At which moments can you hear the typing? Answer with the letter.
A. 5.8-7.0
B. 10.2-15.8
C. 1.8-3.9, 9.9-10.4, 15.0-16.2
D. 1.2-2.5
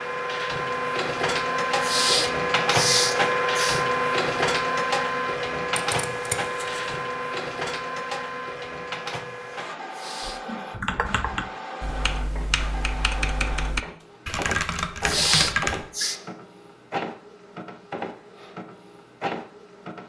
B.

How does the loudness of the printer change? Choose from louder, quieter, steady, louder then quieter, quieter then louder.
quieter.